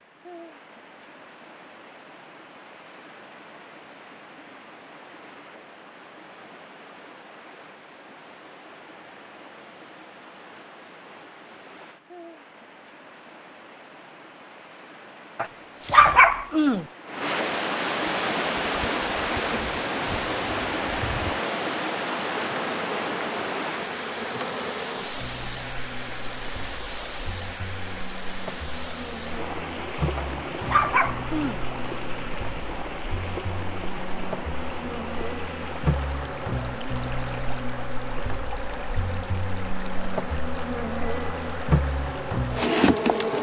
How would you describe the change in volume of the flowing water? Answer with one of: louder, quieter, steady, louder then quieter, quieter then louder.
louder then quieter.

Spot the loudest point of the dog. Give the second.
16 s.